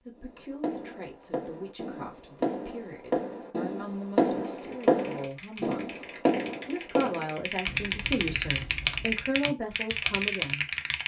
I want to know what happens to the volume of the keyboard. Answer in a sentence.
The volume of the keyboard goes up.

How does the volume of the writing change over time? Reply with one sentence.
The volume of the writing goes up, then down.